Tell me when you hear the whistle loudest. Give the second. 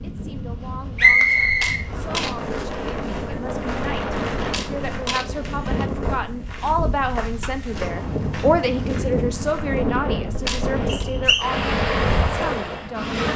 1 s.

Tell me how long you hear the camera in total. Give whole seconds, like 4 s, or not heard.
3 s.